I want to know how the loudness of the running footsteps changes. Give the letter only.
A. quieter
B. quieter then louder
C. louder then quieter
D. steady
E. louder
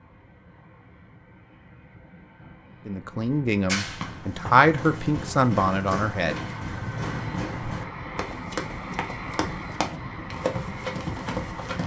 E.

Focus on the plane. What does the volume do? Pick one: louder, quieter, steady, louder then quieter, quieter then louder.
louder.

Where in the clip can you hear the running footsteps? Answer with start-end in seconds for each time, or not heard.
3.6-11.8.